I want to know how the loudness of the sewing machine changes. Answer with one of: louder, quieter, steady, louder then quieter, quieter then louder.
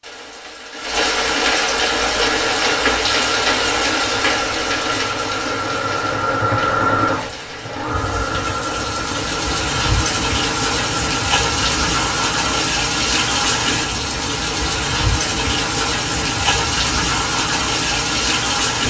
louder then quieter.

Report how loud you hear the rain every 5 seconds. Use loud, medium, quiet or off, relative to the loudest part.
loud, medium, loud, loud.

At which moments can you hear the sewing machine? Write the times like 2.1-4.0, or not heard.
1.9-12.5.